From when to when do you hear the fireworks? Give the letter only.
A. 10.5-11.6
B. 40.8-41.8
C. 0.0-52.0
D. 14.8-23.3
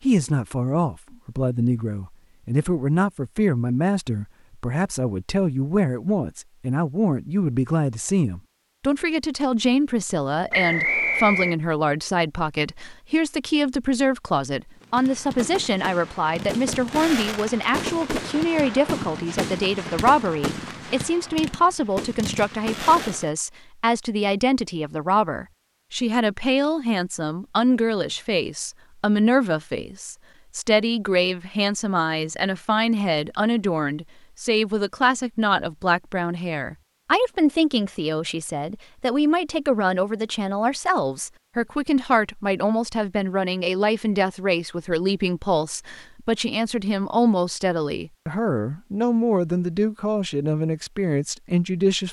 D.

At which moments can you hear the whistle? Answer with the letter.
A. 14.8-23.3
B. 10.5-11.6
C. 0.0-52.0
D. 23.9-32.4
B.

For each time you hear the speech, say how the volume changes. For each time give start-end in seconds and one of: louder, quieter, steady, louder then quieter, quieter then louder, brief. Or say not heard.
0.0-52.0 steady.